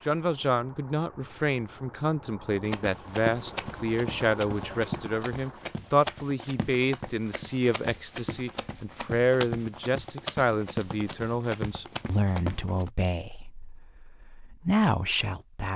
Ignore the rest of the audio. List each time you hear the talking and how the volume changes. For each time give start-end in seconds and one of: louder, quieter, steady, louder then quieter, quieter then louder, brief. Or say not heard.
0.1-15.7 steady.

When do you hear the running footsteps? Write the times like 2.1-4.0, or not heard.
2.6-12.9.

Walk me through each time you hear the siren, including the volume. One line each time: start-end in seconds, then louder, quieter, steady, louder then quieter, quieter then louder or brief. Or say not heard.
not heard.